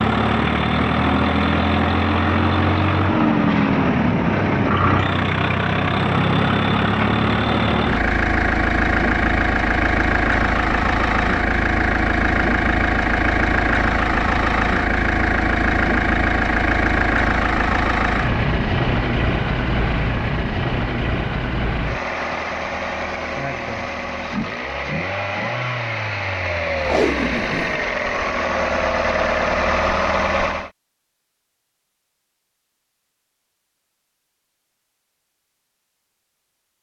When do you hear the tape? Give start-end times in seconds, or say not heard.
26.8-27.9.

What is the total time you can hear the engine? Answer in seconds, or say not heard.
31 s.